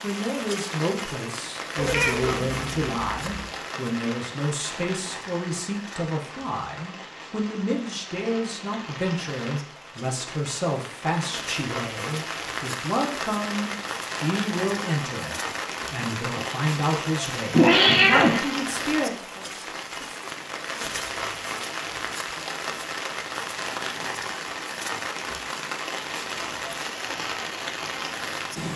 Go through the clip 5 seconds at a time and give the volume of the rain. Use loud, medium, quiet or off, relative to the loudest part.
loud, medium, loud, loud, loud, loud.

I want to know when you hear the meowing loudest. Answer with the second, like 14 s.
18 s.